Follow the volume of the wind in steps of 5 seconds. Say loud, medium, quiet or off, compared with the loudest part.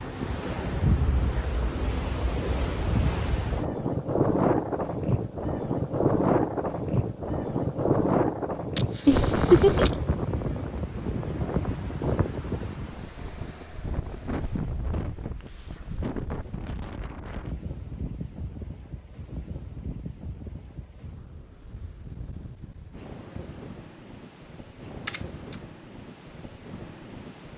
loud, loud, medium, quiet, quiet, quiet.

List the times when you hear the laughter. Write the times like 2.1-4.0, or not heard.
9.1-10.0.